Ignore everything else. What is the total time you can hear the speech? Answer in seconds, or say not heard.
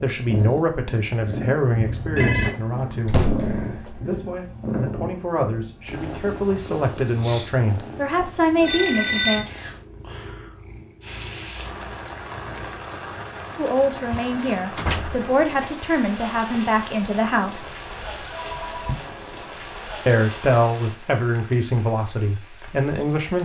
17 s.